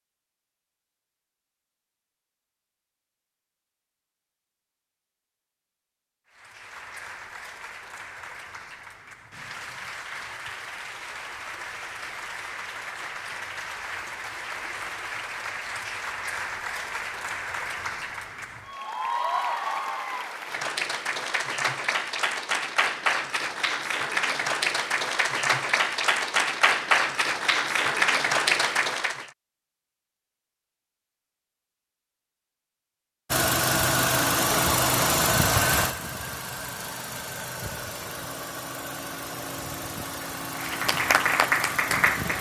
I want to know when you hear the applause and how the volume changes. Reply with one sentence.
You can hear the applause from 6.3 to 29.3 s, getting louder; and briefly from 40.5 to 42.3 s.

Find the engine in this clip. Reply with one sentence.
The engine can be heard from 33.3 to 42.3 s.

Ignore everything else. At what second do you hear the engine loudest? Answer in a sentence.
The loudest moment of the engine is at 35 seconds.